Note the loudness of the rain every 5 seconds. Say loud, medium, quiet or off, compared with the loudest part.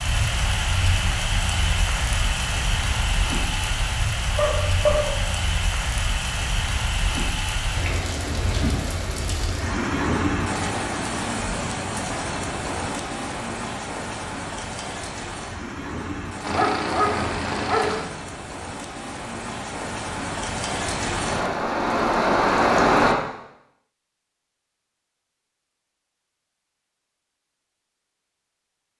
medium, medium, medium, quiet, loud, off.